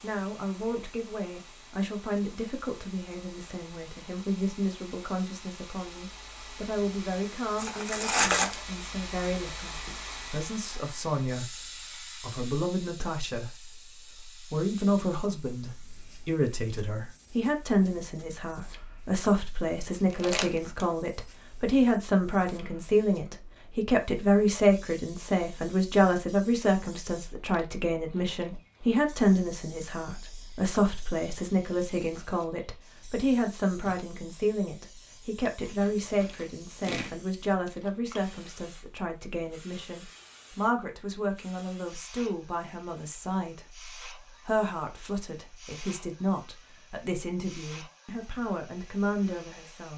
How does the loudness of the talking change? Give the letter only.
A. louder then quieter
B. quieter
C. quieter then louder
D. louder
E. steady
A.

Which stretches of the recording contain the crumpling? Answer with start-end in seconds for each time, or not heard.
7.5-8.6, 20.1-20.9, 35.6-37.1.